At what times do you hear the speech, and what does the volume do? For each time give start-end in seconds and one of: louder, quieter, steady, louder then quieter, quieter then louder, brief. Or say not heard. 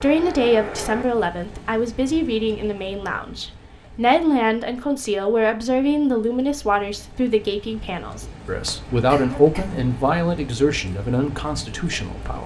0.0-12.4 steady.